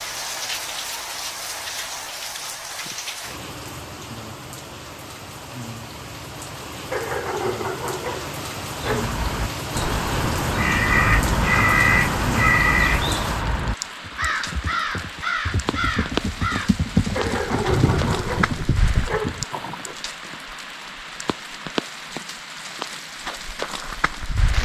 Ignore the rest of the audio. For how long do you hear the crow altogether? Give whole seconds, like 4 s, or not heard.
8 s.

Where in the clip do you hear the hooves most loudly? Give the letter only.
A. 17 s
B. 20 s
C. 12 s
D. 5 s
A.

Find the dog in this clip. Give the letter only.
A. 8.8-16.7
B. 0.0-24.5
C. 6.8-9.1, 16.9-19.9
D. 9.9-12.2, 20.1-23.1
C.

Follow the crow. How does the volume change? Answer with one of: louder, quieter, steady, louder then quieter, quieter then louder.
louder then quieter.